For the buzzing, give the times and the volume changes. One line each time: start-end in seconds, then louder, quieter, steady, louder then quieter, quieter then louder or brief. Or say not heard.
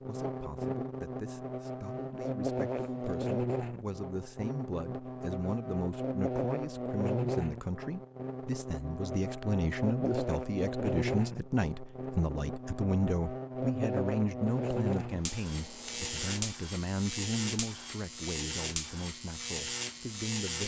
0.0-20.6 steady.